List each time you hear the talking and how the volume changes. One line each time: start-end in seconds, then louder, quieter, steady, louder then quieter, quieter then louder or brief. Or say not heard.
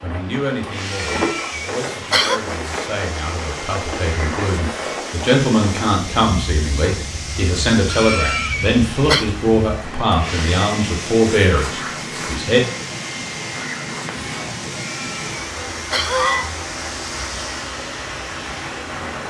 0.0-12.7 louder.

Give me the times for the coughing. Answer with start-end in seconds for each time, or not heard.
0.9-2.4, 7.8-9.2, 14.7-16.5.